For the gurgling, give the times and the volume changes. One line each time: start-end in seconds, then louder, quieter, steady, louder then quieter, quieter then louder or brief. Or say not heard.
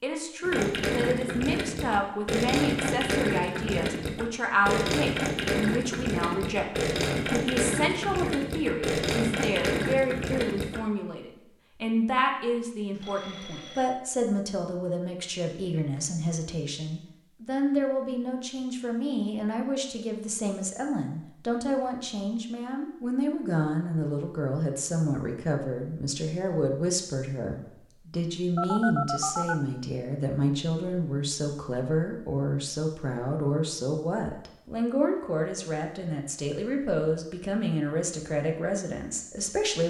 0.4-10.8 steady.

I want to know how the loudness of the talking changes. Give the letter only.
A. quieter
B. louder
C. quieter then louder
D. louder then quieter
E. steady
E.